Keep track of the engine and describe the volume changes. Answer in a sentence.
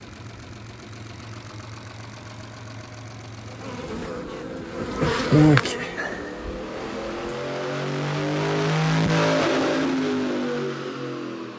The loudness of the engine goes up.